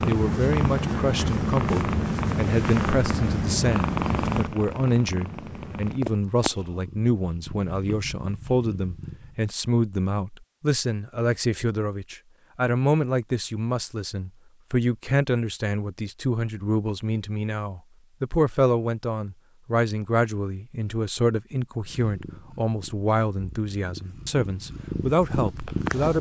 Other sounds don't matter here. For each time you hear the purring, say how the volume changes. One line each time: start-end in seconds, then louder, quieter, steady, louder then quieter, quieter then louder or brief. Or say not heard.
0.0-9.4 quieter
21.8-26.1 louder.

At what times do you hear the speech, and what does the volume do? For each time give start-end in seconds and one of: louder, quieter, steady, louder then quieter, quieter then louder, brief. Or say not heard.
0.1-26.1 steady.